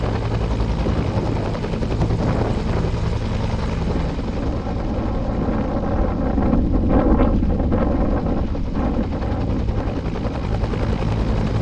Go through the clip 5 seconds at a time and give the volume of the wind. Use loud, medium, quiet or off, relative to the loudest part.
medium, loud, medium.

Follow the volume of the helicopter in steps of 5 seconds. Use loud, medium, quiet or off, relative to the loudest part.
loud, medium, loud.